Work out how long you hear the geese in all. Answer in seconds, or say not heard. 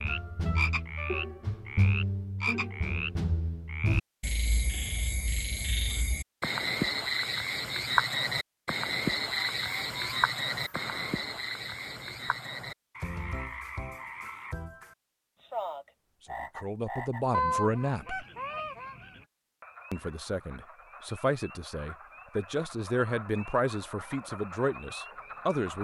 4 s.